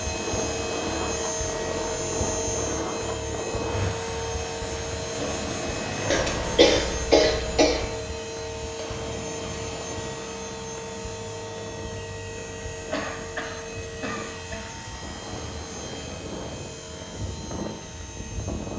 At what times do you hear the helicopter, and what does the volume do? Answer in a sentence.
You can hear the helicopter from 0.0 to 18.7 s, getting quieter.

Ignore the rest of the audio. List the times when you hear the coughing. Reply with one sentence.
The coughing can be heard from 6.1 to 7.8 s and from 12.9 to 14.7 s.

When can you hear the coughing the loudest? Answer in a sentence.
The volume of the coughing peaks at 7 seconds.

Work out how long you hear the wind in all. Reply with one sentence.
You can hear the wind for 19 seconds altogether.